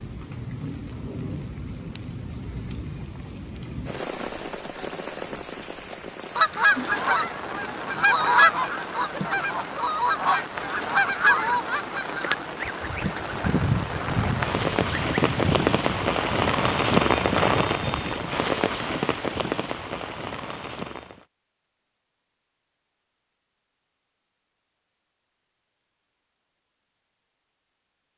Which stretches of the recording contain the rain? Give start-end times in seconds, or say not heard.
0.0-21.2.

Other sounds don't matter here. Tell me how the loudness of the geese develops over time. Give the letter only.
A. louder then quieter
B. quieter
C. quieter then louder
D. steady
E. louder
B.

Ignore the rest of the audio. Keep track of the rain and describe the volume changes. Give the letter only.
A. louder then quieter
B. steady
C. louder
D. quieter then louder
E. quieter
C.